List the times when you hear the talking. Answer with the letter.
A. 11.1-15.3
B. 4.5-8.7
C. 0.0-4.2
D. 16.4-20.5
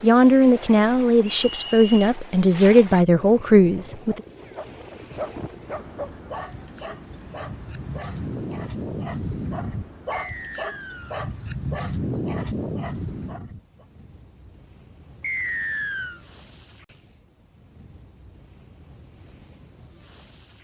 C.